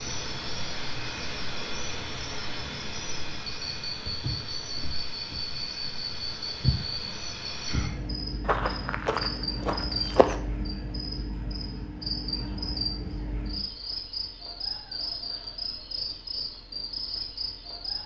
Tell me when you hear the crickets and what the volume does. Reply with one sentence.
You can hear the crickets from 0.0 to 18.0 s, at a steady volume.